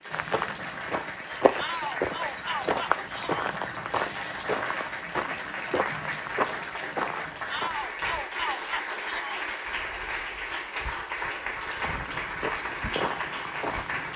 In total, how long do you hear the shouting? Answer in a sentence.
You can hear the shouting for 4 seconds altogether.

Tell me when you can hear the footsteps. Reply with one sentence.
You can hear the footsteps from 0.1 to 7.7 s and from 11.8 to 14.1 s.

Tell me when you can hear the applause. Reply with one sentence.
The applause can be heard from 0.0 to 14.1 s.